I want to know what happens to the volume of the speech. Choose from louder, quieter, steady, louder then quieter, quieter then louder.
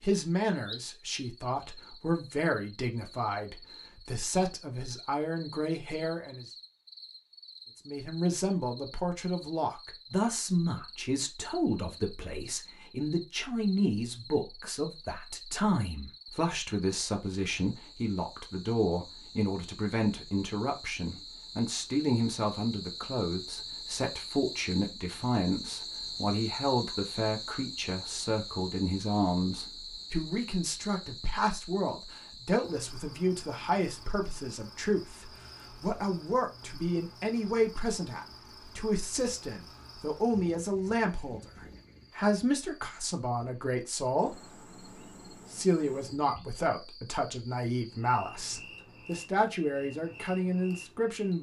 steady.